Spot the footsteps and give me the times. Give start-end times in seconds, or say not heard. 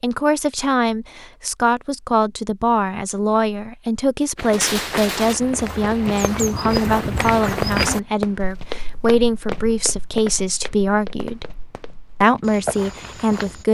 4.3-13.6.